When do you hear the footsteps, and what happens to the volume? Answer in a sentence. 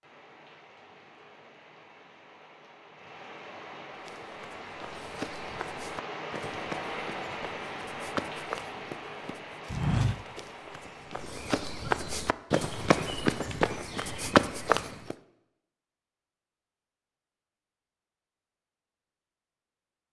You can hear the footsteps from 4.0 to 15.2 s, getting louder.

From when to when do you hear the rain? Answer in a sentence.
The rain can be heard from 0.0 to 11.3 s.